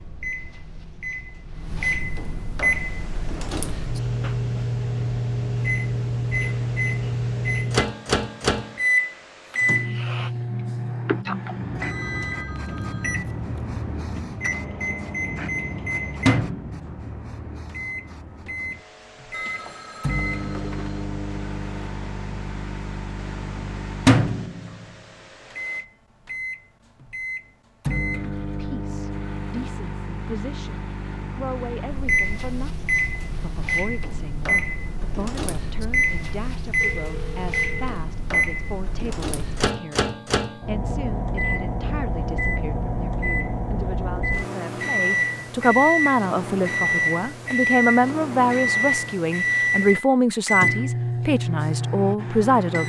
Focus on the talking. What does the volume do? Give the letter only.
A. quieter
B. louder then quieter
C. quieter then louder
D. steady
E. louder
E.